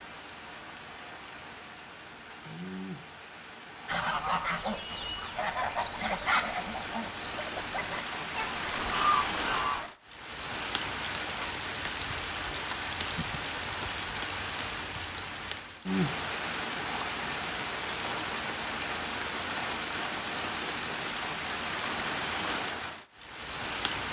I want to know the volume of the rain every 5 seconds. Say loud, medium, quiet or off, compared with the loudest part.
medium, loud, loud, loud, loud.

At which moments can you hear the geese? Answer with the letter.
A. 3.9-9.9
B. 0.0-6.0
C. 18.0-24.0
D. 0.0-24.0
A.